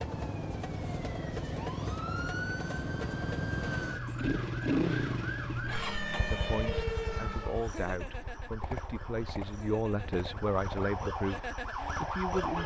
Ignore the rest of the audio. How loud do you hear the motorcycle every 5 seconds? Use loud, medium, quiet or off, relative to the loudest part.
loud, medium, medium.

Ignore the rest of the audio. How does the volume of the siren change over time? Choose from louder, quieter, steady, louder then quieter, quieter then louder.
quieter then louder.